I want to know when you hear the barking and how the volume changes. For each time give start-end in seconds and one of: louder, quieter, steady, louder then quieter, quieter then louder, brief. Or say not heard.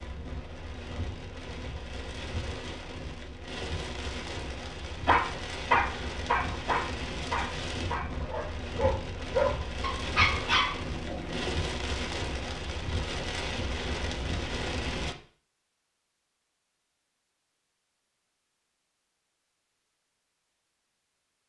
5.0-11.6 quieter then louder.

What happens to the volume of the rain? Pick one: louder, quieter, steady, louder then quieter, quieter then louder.
louder.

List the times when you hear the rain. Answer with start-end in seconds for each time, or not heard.
0.0-15.2.